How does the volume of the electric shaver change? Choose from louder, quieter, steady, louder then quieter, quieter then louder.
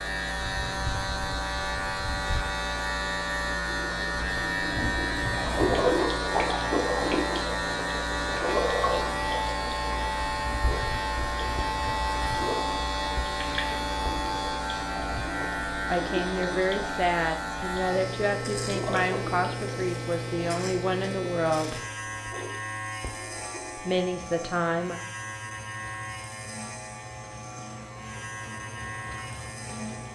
quieter.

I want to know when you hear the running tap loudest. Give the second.
6 s.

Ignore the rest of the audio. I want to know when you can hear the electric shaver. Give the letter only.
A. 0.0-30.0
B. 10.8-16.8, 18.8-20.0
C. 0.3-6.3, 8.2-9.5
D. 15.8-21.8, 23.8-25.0
A.